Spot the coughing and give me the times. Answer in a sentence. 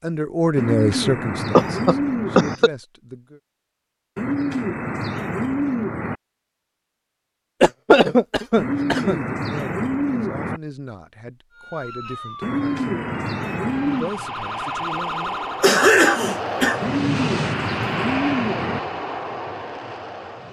You can hear the coughing from 1.5 to 2.7 s, from 7.6 to 9.2 s and from 15.6 to 16.8 s.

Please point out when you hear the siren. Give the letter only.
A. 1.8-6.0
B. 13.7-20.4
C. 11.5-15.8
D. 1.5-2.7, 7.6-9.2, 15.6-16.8
C.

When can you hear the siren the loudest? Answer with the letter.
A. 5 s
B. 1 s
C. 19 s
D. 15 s
D.